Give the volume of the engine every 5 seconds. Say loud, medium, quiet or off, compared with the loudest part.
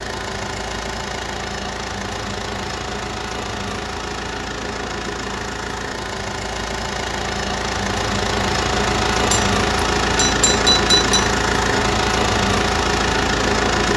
medium, loud, loud.